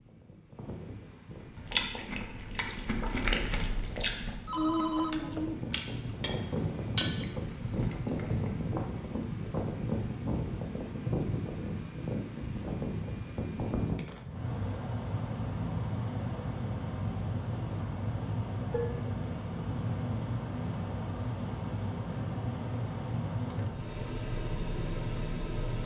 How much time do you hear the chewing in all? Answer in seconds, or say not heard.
7 s.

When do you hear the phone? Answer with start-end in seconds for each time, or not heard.
4.5-5.6.